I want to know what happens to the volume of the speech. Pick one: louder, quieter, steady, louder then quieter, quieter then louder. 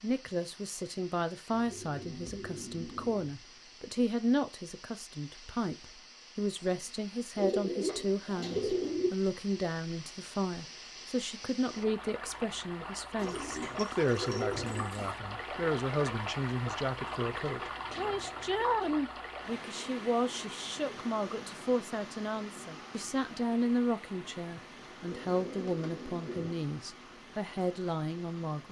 steady.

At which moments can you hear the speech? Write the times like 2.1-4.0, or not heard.
0.0-28.6.